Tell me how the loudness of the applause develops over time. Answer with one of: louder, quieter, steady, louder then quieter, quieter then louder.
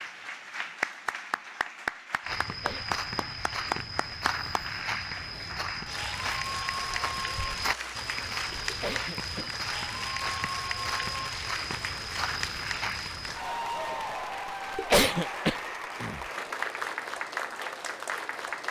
steady.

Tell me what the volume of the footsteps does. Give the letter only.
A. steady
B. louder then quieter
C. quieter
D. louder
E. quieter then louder
A.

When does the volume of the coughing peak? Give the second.
15 s.